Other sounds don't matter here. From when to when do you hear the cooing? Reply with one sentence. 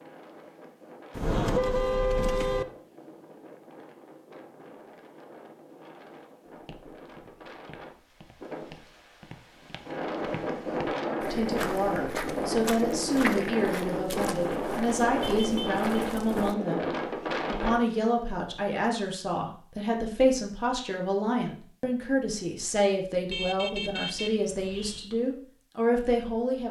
The cooing can't be heard in this clip.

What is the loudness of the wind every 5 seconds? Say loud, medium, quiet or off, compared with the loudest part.
quiet, quiet, loud, loud, off, off.